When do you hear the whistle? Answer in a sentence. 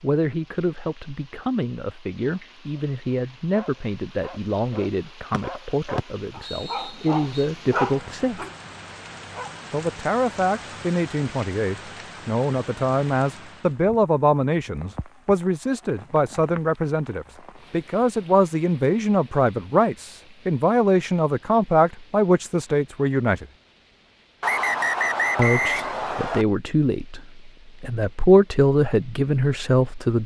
You can hear the whistle from 5.3 to 7.5 s and from 24.4 to 26.4 s.